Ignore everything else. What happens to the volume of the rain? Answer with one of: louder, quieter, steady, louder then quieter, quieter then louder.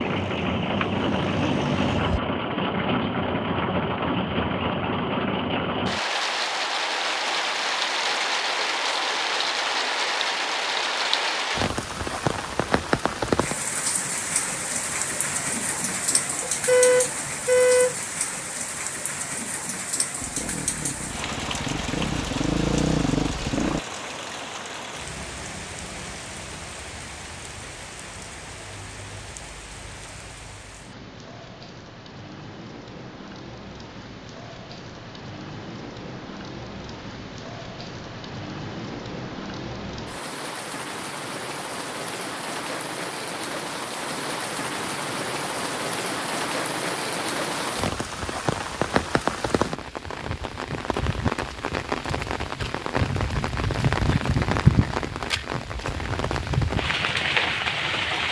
quieter then louder.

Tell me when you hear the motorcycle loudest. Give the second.
23 s.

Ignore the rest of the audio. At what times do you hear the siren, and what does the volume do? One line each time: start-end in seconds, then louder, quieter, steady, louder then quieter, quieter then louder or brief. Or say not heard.
not heard.